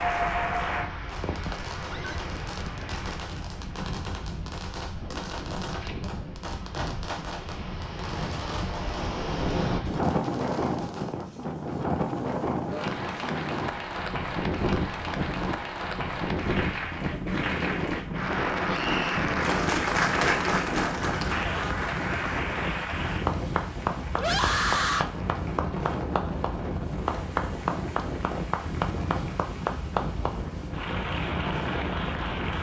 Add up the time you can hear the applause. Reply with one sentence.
You can hear the applause for 23 seconds altogether.